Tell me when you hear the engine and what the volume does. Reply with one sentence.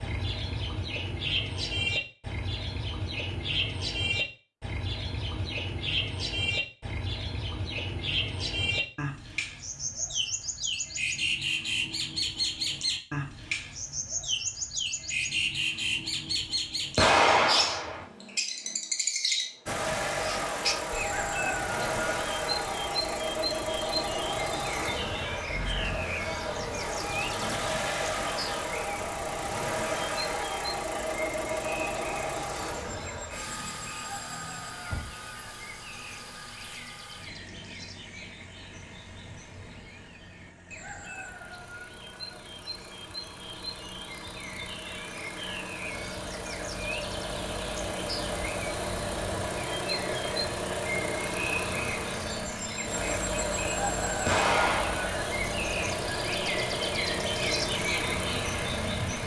You can hear the engine from 19.6 to 59.2 s, getting quieter then louder.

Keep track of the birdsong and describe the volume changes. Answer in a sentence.
The volume of the birdsong goes down, then up.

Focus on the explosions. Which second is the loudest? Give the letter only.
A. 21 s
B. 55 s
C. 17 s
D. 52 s
C.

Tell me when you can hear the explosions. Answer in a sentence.
The explosions can be heard from 16.9 to 18.1 s and from 54.2 to 55.1 s.